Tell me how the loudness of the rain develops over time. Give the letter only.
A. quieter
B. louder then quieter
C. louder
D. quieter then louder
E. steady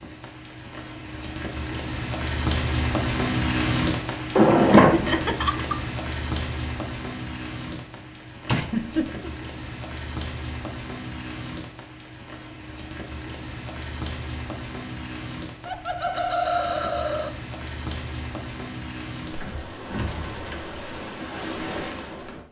A.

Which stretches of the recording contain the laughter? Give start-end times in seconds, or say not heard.
4.9-5.8, 8.5-9.3, 15.7-17.3.